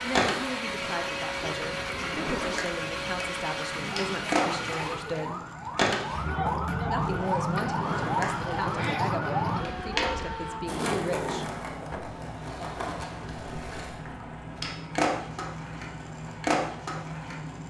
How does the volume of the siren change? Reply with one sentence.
The volume of the siren goes up.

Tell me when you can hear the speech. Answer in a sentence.
You can hear the speech from 0.0 to 5.4 s and from 6.8 to 11.6 s.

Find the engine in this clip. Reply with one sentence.
The engine can be heard from 0.0 to 17.6 s.